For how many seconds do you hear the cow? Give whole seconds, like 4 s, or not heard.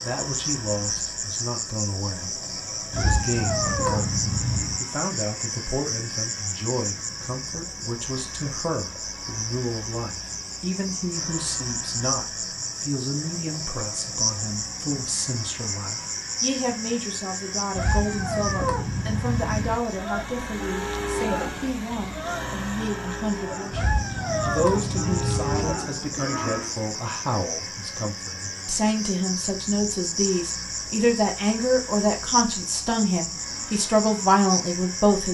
7 s.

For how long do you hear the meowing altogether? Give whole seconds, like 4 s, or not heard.
6 s.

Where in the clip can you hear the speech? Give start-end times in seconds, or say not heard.
0.0-35.2.